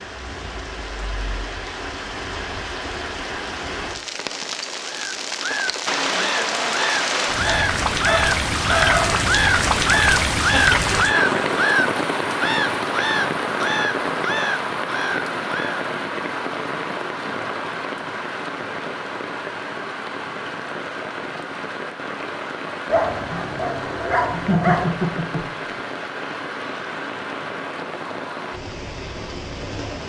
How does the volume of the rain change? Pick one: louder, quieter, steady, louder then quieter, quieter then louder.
louder then quieter.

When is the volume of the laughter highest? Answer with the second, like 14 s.
25 s.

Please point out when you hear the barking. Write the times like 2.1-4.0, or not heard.
7.4-9.2, 22.9-24.9.